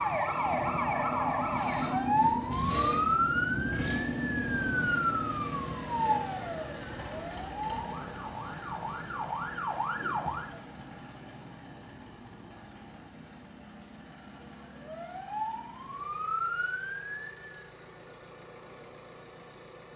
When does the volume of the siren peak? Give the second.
3 s.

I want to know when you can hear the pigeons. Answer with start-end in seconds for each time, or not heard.
not heard.